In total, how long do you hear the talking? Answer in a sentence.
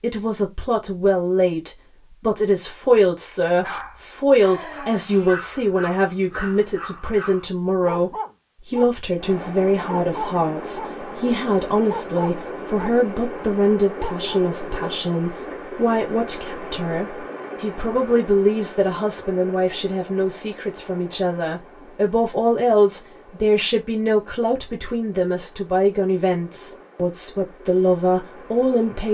You can hear the talking for 29 seconds altogether.